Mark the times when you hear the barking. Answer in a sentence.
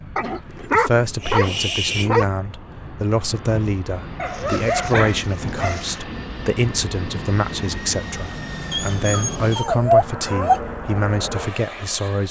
You can hear the barking from 0.1 to 2.2 s, from 4.2 to 6.0 s and from 8.7 to 10.6 s.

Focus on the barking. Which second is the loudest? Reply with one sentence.
The volume of the barking peaks at 10 seconds.